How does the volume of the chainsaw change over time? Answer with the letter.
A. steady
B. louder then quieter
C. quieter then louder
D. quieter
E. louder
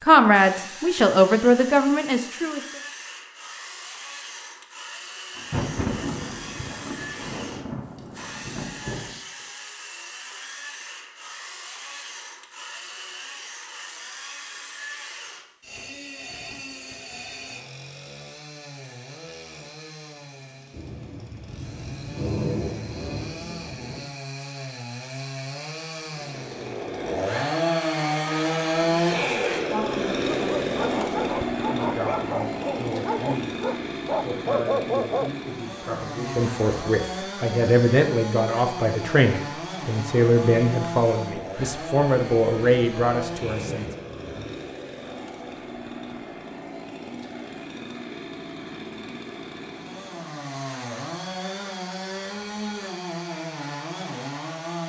B.